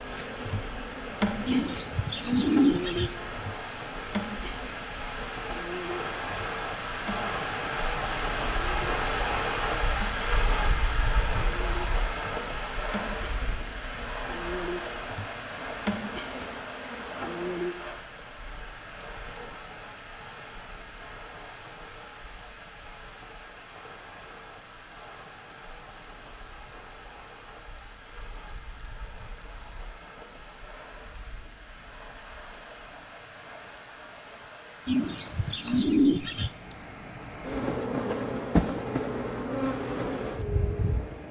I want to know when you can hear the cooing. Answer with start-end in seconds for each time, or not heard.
1.4-3.1, 34.9-36.5.